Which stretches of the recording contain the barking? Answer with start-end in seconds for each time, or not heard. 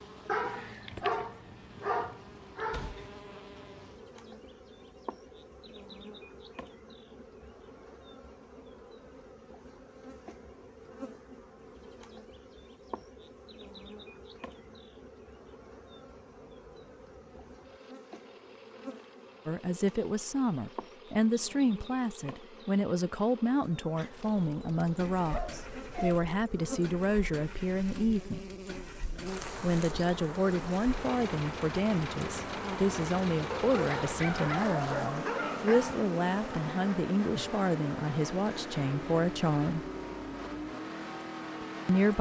0.2-3.0, 23.9-26.2, 33.5-36.0.